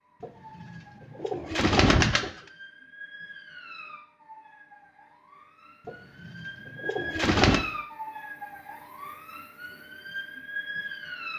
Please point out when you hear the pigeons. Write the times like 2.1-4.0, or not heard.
0.2-2.3, 5.8-7.7.